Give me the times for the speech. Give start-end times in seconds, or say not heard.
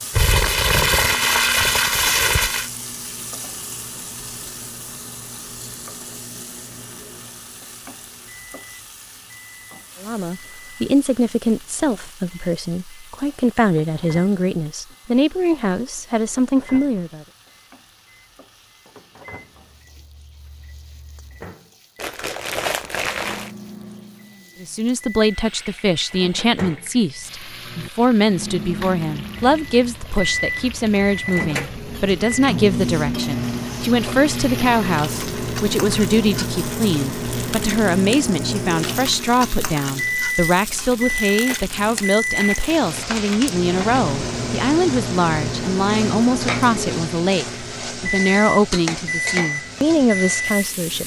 10.0-17.2, 24.6-51.0.